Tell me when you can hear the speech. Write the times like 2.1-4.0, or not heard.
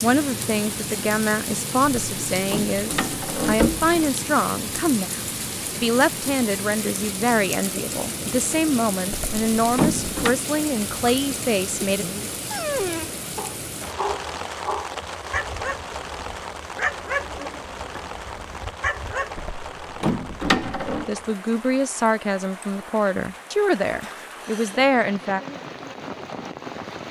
0.0-12.1, 21.1-25.4.